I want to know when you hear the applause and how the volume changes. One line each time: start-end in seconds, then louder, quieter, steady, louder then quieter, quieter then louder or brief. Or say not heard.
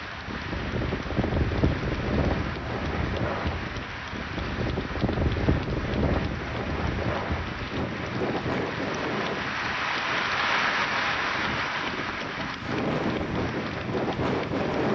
0.0-14.8 louder then quieter.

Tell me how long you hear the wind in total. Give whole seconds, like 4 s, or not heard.
15 s.